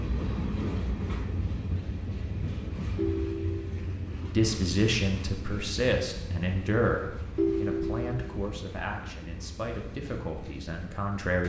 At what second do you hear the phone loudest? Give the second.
8 s.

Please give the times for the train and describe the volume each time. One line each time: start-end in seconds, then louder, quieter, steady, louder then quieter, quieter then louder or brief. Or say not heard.
0.0-11.4 quieter.